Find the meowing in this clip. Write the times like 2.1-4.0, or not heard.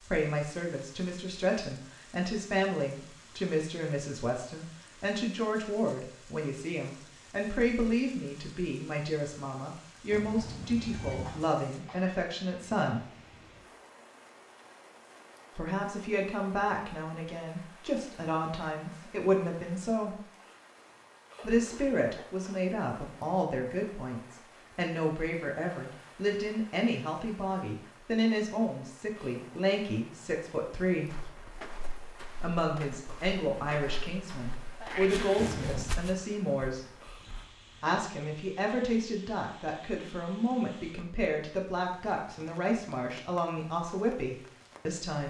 10.1-11.5, 35.4-36.0.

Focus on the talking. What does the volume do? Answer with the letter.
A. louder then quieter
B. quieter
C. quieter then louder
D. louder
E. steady
E.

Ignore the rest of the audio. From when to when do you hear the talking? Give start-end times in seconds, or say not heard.
0.1-13.1, 15.6-20.1, 21.4-31.2, 32.4-36.9, 37.8-45.2.